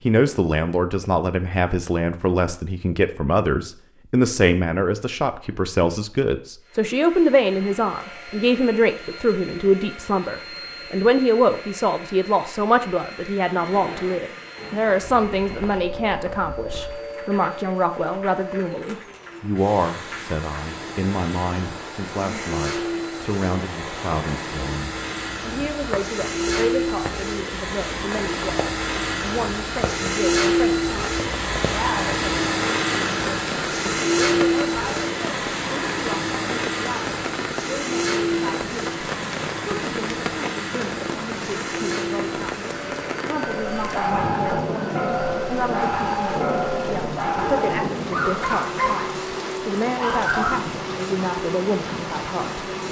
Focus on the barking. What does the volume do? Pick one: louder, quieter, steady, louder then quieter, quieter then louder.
steady.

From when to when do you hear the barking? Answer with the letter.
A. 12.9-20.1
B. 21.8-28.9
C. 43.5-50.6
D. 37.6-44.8
C.